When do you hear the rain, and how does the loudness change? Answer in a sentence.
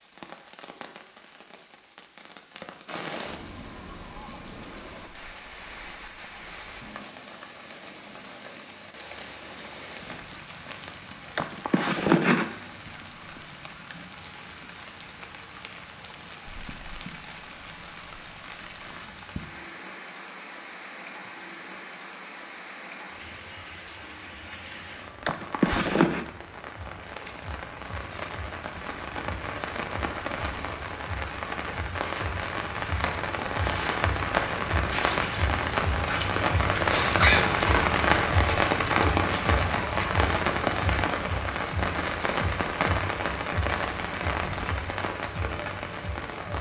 The rain can be heard from 0.0 to 46.5 s, getting louder.